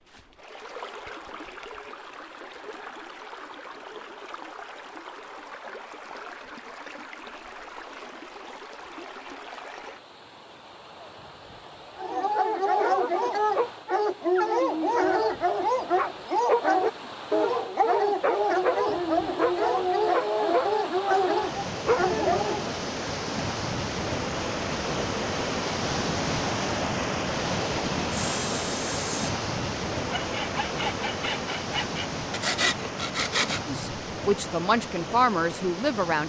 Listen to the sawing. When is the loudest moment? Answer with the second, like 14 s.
33 s.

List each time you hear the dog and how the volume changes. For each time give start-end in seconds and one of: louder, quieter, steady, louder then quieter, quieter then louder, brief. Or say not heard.
11.9-22.7 steady.